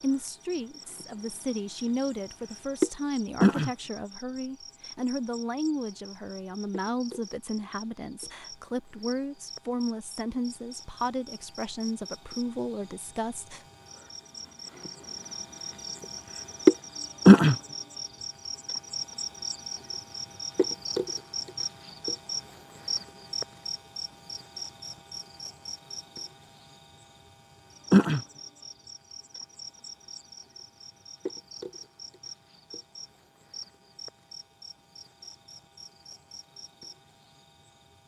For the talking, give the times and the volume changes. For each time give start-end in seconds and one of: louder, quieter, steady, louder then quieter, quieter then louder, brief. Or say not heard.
0.0-13.7 steady.